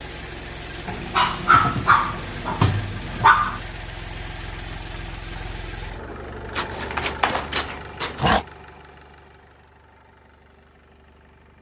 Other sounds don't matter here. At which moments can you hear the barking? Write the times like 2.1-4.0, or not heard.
0.8-3.6, 6.5-8.4.